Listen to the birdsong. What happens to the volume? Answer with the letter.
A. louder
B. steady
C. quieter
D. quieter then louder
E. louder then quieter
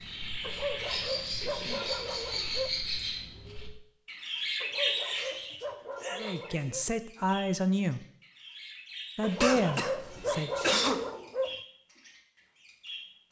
C.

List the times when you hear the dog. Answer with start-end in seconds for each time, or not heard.
0.4-2.8, 4.6-6.8, 9.2-11.6.